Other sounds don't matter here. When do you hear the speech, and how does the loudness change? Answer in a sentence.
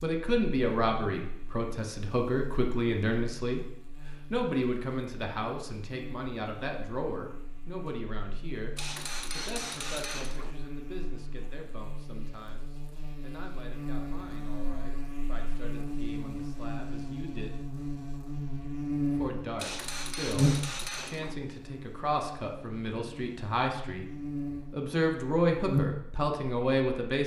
The speech can be heard from 0.0 to 17.6 s, getting quieter; and from 19.1 to 27.2 s, getting louder.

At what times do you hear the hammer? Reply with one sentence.
The hammer can be heard from 8.8 to 10.6 s and from 19.6 to 21.4 s.